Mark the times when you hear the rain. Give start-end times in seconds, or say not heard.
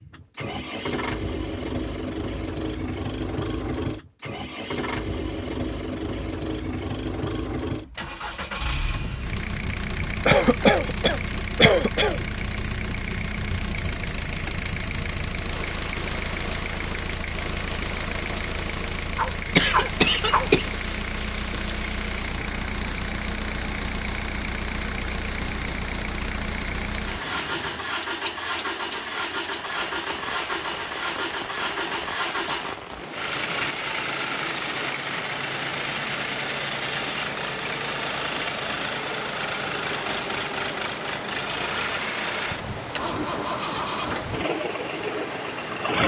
8.8-46.0.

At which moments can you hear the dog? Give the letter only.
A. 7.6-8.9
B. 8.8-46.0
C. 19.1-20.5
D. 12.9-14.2
C.